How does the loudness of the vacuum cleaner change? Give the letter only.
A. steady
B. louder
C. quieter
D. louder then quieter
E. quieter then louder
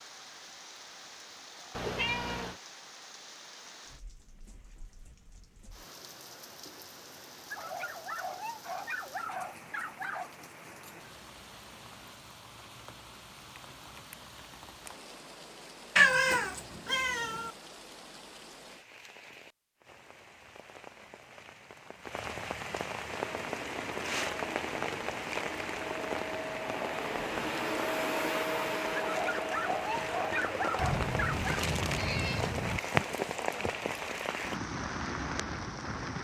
D.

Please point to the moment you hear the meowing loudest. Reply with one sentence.
The volume of the meowing peaks at 16 seconds.